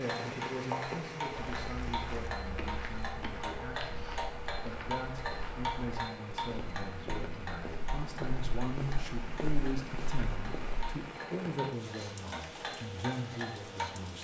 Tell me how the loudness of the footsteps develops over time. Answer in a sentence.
The volume of the footsteps stays about the same.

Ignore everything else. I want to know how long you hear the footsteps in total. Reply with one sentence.
You can hear the footsteps for 10 seconds altogether.